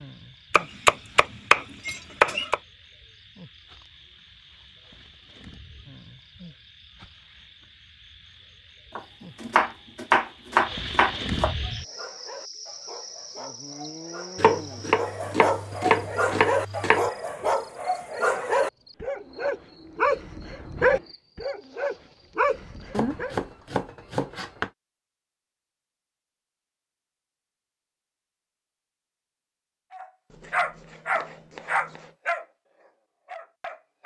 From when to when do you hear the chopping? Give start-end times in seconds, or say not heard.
0.5-2.6, 8.9-11.6, 14.3-17.1, 22.9-24.7, 30.3-32.1.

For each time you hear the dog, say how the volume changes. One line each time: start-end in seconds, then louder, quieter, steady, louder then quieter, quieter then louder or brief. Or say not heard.
11.6-23.4 louder
29.9-34.0 quieter.